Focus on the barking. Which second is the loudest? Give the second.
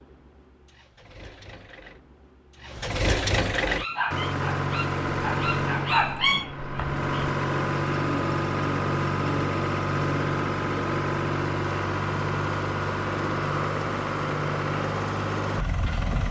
6 s.